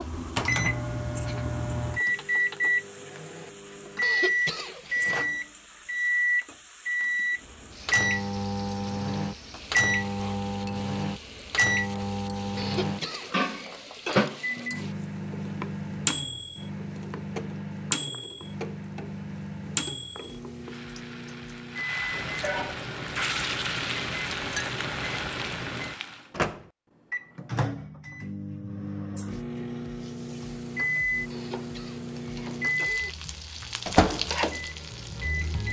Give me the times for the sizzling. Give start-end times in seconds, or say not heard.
0.0-26.3, 29.9-35.6.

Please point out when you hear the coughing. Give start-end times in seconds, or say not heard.
4.0-5.2, 12.6-14.2, 31.3-33.1.